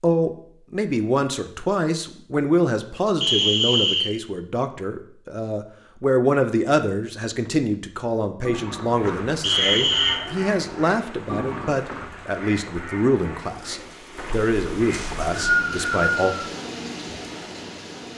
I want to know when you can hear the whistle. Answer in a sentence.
The whistle can be heard from 3.2 to 4.1 s, from 9.4 to 10.2 s and from 14.9 to 16.4 s.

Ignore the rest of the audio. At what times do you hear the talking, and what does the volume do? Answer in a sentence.
The talking can be heard from 0.0 to 16.3 s, at a steady volume.